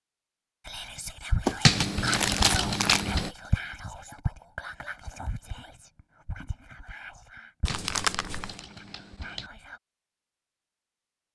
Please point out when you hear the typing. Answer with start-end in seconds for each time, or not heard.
1.6-3.3, 7.7-9.5.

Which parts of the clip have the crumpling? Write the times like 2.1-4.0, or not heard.
1.4-3.0, 7.7-8.6.